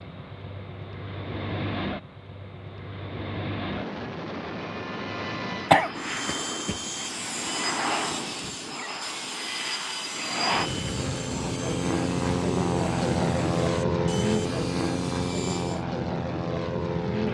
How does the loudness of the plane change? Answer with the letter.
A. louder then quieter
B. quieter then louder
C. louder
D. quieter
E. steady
C.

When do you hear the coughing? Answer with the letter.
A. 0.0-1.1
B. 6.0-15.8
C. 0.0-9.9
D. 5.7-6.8
D.